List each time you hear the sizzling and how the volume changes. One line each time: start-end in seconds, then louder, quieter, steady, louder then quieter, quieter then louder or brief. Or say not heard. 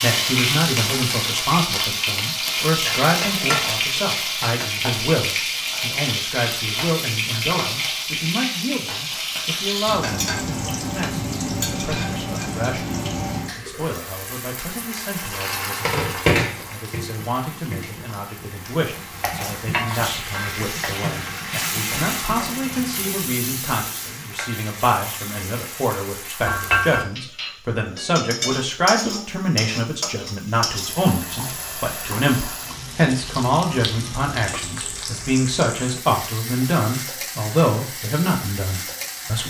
0.0-39.4 quieter.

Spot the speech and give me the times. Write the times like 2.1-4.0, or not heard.
0.0-39.4.